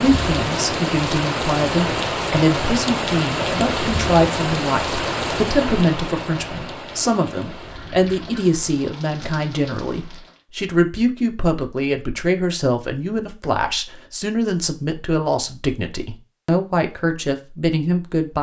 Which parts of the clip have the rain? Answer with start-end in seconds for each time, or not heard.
0.0-10.4.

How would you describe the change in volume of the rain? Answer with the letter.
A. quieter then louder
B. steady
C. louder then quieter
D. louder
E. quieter
E.